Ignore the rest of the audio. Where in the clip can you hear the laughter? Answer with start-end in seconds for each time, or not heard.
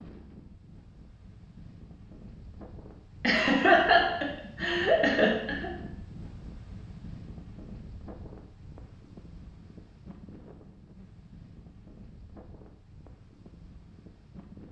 3.2-5.7.